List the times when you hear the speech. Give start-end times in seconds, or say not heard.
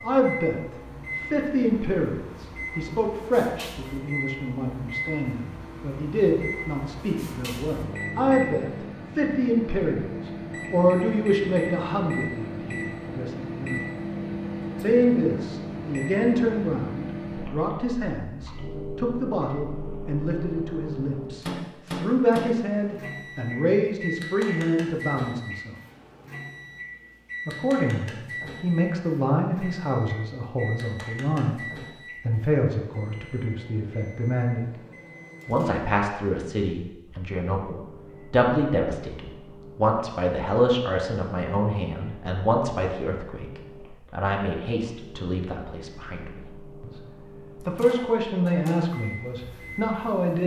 0.0-13.8, 14.8-25.8, 27.4-34.8, 35.5-47.0, 47.6-50.4.